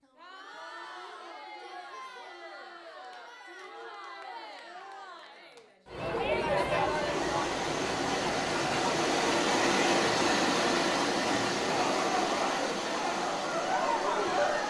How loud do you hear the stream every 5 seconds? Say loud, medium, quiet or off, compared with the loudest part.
off, loud, loud.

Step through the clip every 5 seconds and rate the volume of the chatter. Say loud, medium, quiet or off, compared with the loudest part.
quiet, loud, loud.